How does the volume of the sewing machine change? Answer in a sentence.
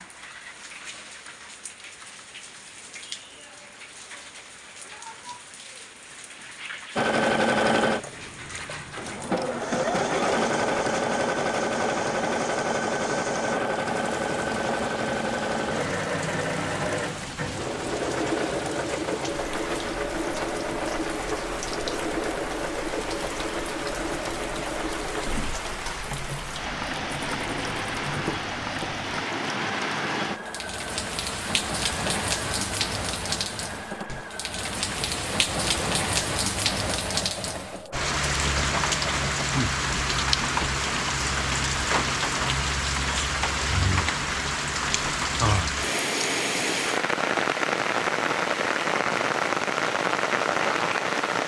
The loudness of the sewing machine goes down.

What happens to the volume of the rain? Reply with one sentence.
The volume of the rain goes up.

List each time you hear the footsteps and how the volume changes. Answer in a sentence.
The footsteps can't be heard in this clip.